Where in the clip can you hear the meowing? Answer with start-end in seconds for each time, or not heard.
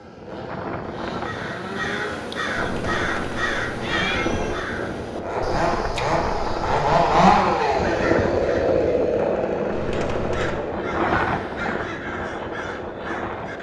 2.5-4.5, 9.7-10.6.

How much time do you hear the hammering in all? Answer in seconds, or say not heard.
not heard.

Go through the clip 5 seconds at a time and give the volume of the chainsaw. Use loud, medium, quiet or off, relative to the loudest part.
quiet, loud, medium.